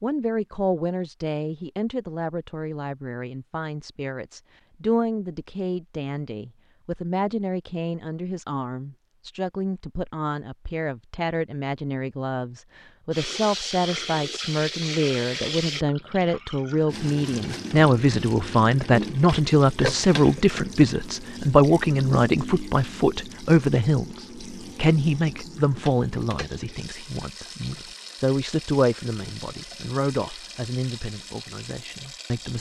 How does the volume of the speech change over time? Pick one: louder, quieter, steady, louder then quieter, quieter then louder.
louder then quieter.